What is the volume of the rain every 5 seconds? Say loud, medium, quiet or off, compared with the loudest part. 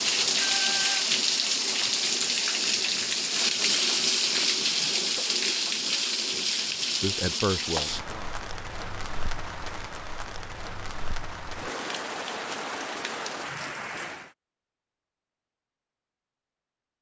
loud, medium, medium, off.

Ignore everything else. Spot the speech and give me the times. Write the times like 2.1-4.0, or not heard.
7.0-8.4.